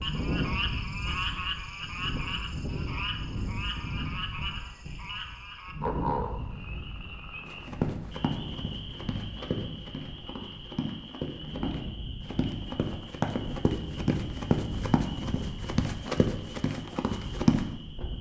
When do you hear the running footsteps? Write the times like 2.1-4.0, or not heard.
7.5-17.6.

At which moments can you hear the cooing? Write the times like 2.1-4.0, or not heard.
not heard.